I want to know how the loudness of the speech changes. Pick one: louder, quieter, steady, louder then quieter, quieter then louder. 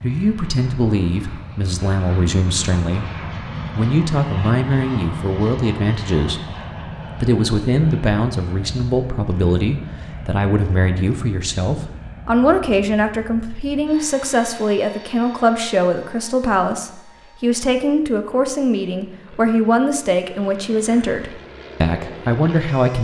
steady.